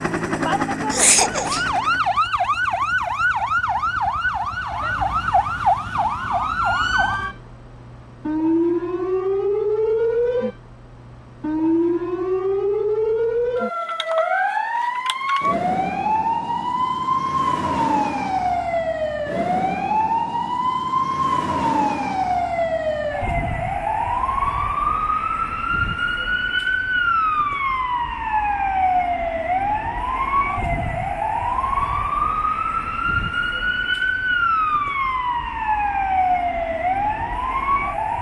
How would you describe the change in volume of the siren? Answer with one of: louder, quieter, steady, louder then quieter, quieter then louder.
steady.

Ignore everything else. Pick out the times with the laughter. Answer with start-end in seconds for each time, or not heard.
0.9-1.8.